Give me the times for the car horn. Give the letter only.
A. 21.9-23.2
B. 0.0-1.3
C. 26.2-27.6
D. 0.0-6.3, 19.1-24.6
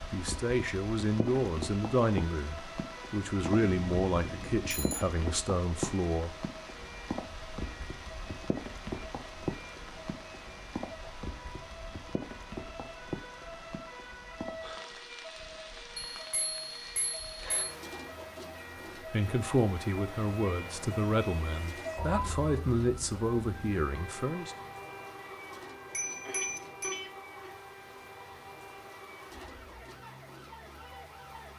C.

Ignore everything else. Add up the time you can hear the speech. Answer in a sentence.
You can hear the speech for 12 seconds altogether.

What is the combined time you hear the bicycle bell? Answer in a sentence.
The bicycle bell can be heard for 4 seconds in total.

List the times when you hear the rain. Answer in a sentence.
The rain can be heard from 0.0 to 31.5 s.